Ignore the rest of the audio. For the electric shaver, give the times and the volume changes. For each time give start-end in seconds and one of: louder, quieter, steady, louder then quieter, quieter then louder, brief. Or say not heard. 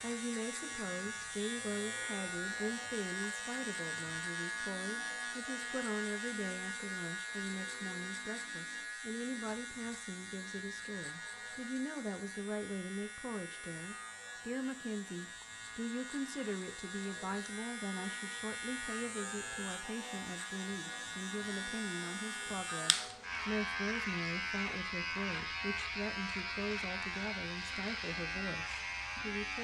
0.0-29.5 quieter then louder.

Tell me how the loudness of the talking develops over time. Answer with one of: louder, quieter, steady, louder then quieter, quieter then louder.
steady.